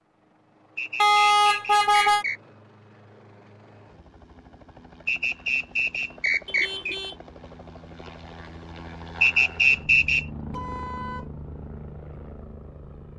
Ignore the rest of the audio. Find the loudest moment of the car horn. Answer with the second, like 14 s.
1 s.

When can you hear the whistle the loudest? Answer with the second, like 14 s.
10 s.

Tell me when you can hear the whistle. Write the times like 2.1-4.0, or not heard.
0.8-2.4, 5.0-7.0, 9.2-10.2.